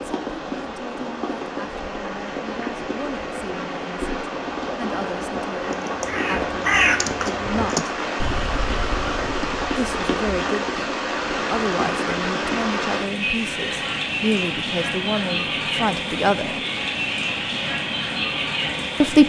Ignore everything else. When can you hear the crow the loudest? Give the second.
7 s.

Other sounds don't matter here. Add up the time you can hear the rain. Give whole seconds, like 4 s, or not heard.
19 s.